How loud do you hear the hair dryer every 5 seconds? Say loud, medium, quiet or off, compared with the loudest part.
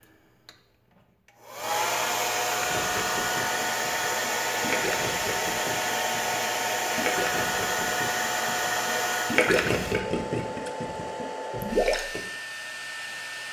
loud, loud, medium.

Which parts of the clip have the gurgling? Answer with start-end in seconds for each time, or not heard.
2.5-12.2.